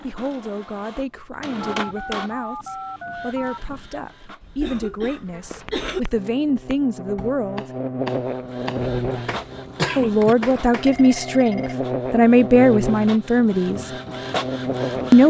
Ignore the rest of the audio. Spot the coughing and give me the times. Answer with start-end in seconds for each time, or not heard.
4.4-6.0, 9.6-10.3.